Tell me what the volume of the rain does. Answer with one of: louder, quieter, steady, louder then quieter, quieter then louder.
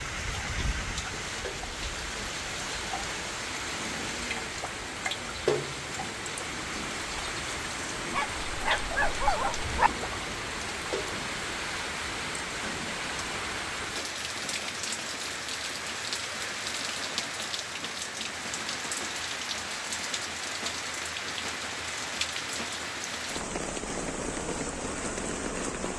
steady.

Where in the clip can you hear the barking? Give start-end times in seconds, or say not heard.
8.1-9.9.